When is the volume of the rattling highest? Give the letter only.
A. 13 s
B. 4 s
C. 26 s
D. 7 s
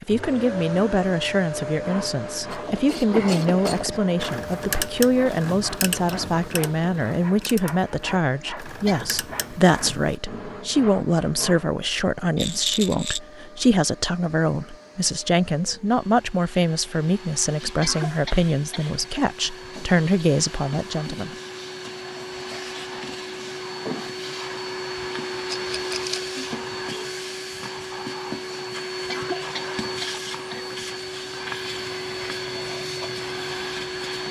A.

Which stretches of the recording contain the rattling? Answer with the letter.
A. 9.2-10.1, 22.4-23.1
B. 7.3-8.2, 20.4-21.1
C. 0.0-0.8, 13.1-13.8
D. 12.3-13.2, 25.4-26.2
D.